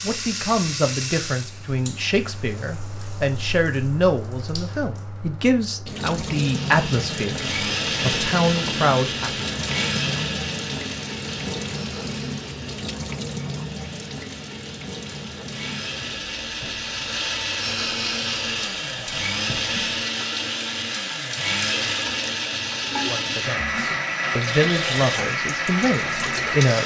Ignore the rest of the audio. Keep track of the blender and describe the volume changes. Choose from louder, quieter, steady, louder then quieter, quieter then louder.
quieter then louder.